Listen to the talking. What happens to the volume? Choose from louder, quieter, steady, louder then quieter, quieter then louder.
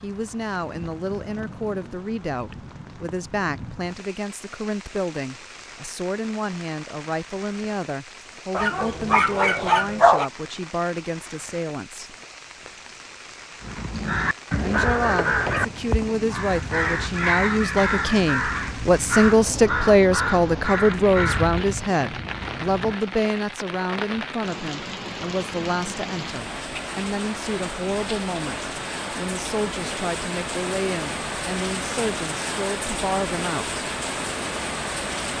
louder then quieter.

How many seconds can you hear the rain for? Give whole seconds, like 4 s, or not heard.
35 s.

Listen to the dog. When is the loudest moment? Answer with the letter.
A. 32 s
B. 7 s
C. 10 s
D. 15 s
C.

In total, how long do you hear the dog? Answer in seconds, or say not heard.
2 s.